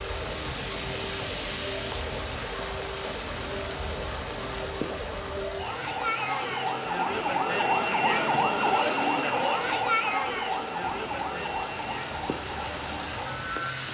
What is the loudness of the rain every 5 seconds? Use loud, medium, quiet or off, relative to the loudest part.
loud, medium, loud.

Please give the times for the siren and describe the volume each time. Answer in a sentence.
You can hear the siren from 0.0 to 13.7 s, getting louder then quieter.